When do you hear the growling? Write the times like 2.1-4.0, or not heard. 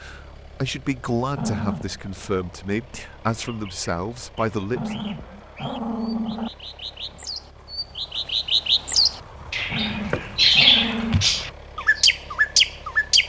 1.4-2.0, 4.7-6.5, 9.7-11.2.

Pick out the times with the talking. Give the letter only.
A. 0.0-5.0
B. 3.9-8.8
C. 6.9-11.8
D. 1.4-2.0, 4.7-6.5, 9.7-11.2
A.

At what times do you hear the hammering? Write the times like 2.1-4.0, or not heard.
not heard.